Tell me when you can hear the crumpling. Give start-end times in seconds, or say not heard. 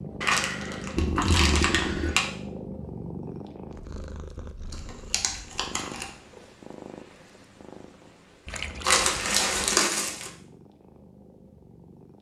0.2-2.2, 4.7-6.0, 8.8-10.3.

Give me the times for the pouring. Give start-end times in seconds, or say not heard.
0.9-2.1, 8.4-9.6.